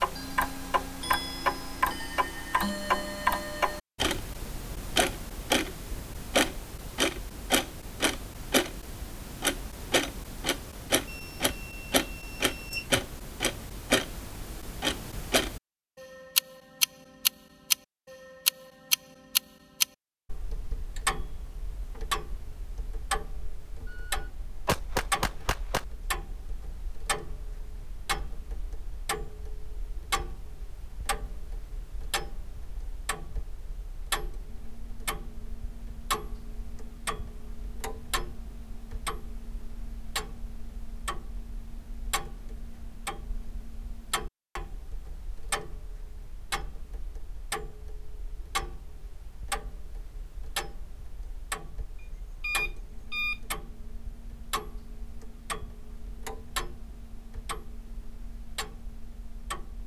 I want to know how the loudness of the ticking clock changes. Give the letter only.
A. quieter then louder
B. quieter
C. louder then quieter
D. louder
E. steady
B.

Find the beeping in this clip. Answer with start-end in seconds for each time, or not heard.
11.1-13.0, 23.9-25.9, 52.0-53.4.